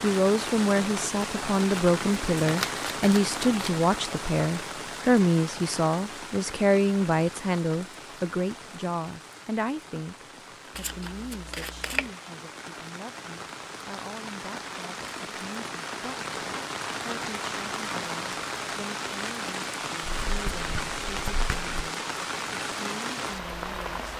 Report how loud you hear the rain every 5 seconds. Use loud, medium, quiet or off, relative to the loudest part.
loud, medium, medium, loud, loud.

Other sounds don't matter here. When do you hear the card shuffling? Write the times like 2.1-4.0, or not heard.
2.4-3.8, 10.8-12.1, 20.0-21.8.